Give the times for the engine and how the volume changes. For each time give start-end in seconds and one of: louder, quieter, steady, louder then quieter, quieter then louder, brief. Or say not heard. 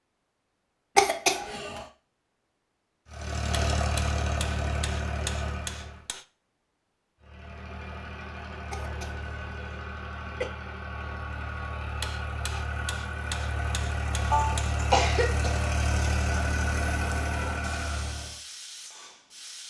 3.1-6.0 brief
7.2-18.4 louder.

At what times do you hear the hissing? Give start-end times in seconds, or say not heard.
16.7-19.6.